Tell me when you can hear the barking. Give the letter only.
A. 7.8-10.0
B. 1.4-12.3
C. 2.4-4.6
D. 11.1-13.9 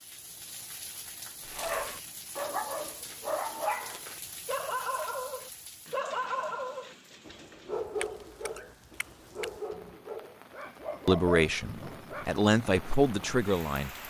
B.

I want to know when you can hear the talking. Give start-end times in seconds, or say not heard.
11.1-13.9.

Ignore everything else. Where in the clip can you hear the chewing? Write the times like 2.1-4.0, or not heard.
7.8-10.0.